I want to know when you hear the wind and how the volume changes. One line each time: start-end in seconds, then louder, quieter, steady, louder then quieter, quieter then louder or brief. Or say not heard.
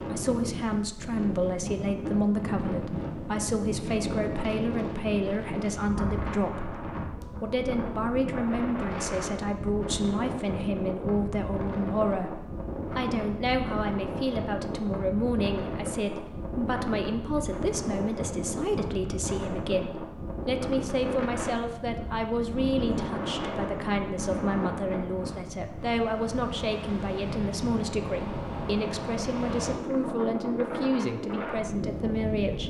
0.0-32.6 steady.